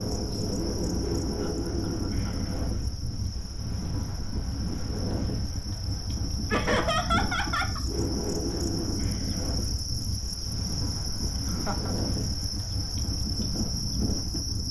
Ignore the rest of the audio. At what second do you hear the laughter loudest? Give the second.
7 s.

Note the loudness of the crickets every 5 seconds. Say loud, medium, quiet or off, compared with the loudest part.
medium, loud, loud.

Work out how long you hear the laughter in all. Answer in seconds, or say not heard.
3 s.